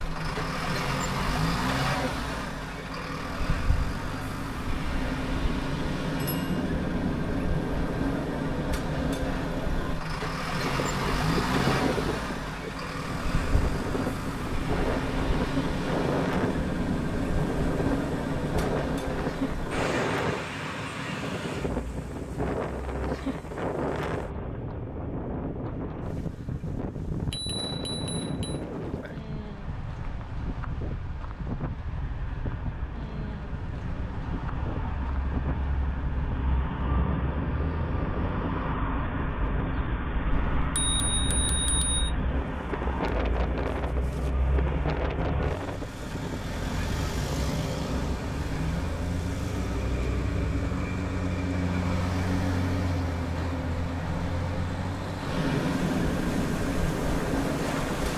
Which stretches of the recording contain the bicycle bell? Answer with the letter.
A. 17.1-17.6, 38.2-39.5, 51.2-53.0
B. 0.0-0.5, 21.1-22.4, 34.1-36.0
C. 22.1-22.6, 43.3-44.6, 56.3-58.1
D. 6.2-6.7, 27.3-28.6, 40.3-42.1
D.